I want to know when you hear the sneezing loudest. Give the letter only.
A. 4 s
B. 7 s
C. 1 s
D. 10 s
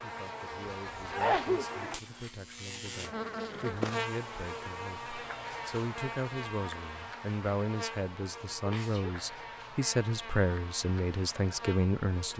C.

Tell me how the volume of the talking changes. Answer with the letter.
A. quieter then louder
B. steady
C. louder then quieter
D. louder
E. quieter
D.